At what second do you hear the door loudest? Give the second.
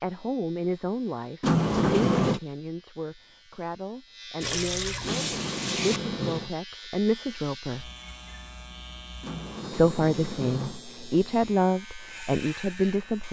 2 s.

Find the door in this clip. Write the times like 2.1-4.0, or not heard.
1.4-2.4, 5.0-6.5, 9.2-10.8.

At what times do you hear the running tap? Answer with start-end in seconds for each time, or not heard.
4.4-6.0.